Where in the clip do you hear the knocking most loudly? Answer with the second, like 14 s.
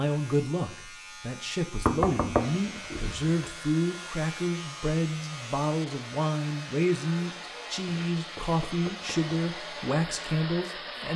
2 s.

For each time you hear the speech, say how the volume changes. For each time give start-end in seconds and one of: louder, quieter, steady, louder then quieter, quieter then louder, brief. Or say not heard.
0.0-11.1 steady.